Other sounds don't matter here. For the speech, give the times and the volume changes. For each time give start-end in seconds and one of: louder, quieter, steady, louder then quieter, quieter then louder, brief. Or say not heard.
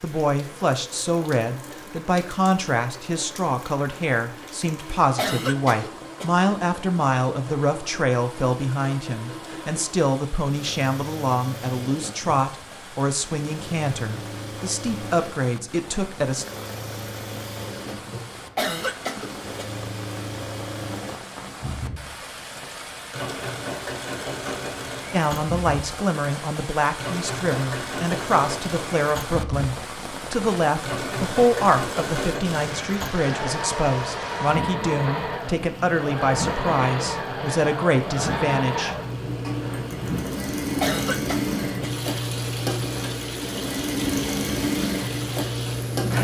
0.0-16.4 steady
25.1-39.0 steady.